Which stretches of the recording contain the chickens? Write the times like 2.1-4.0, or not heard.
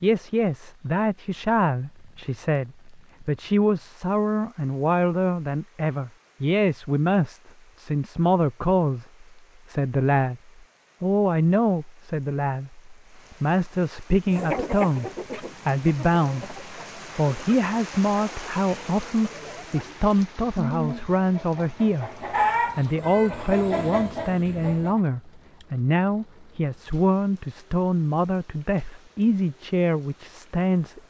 14.3-25.0.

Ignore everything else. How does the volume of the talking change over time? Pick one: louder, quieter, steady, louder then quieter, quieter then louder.
steady.